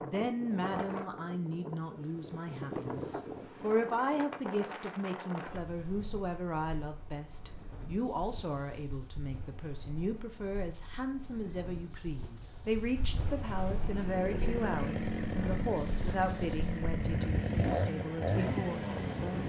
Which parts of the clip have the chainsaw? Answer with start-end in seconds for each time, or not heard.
13.8-19.4.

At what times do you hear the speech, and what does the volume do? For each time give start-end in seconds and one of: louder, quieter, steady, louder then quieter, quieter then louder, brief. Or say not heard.
0.0-19.4 steady.